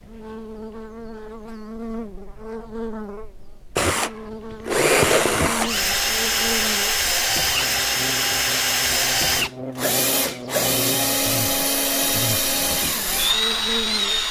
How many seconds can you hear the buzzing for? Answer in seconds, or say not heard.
14 s.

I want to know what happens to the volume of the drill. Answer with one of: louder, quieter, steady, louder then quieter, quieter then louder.
steady.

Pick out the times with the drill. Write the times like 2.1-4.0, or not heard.
3.8-14.2.